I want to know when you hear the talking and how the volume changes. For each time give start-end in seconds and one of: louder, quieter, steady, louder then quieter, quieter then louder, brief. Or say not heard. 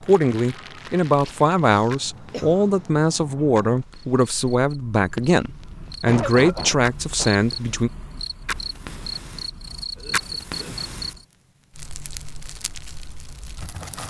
0.0-7.9 steady.